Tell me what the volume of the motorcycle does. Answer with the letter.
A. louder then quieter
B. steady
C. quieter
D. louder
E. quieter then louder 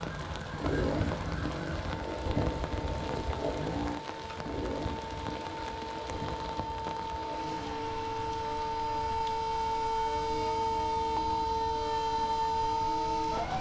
C.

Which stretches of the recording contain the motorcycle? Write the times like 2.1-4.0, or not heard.
0.0-13.5.